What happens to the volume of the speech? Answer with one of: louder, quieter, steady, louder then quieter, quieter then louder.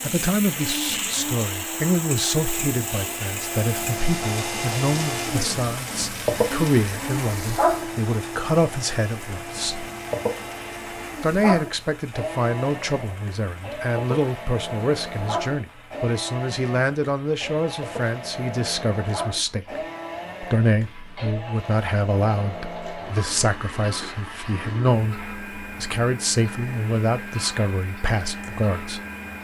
steady.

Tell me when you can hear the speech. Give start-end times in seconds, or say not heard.
0.0-9.8, 11.2-19.8, 20.4-29.0.